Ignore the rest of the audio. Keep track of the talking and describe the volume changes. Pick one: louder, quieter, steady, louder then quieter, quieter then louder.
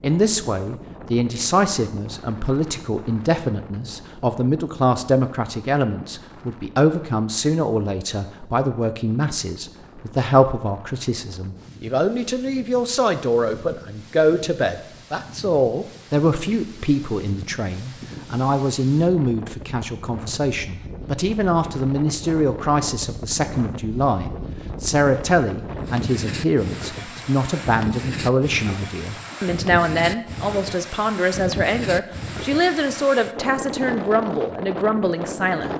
steady.